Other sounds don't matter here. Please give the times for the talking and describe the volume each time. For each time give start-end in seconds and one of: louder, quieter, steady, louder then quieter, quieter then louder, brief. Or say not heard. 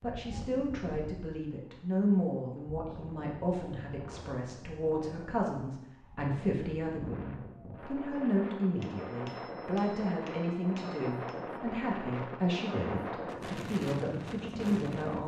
0.0-15.2 steady.